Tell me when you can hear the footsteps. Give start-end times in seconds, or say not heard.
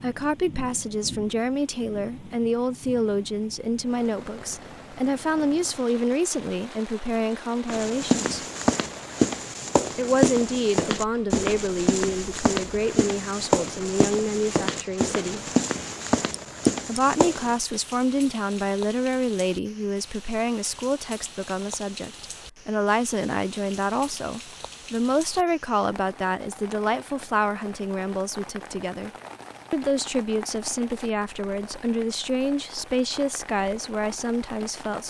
7.7-17.6.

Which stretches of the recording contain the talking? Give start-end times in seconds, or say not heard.
0.0-8.4, 9.9-15.4, 16.9-29.1, 29.7-35.0.